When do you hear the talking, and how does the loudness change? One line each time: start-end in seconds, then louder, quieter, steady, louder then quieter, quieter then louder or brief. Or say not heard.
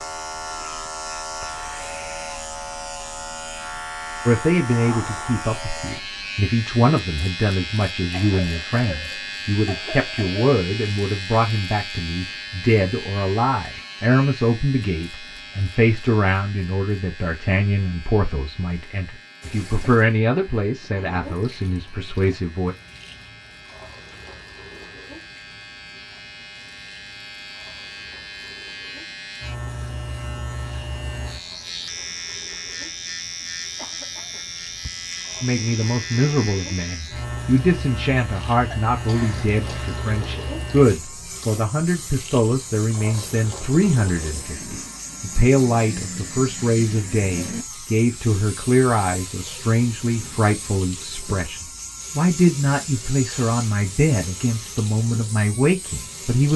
4.2-22.8 steady
35.4-56.5 steady.